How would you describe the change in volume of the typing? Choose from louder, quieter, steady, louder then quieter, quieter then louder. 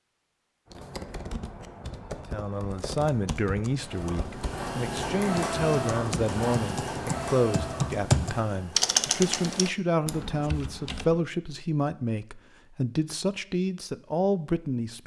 louder then quieter.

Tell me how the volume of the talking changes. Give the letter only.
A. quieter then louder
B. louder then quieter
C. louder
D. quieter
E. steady
E.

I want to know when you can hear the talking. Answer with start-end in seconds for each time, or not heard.
2.1-15.0.